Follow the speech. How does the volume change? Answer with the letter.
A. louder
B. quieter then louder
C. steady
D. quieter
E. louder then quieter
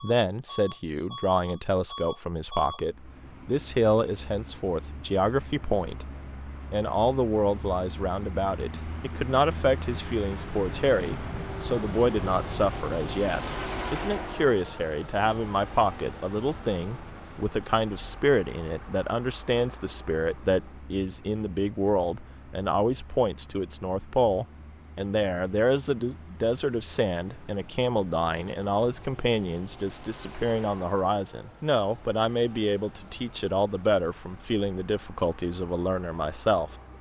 C.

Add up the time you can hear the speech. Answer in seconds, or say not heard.
36 s.